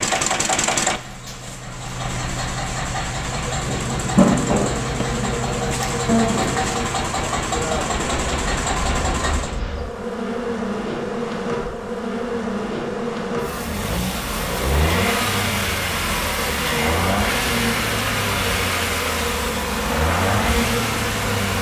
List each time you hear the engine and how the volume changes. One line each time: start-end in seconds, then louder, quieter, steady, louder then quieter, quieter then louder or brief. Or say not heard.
0.0-9.6 steady
13.6-21.5 steady.